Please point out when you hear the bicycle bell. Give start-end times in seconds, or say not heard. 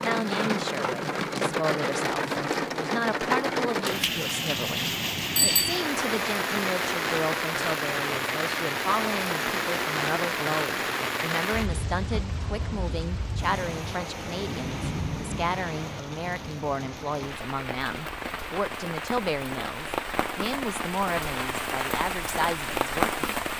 5.3-5.8.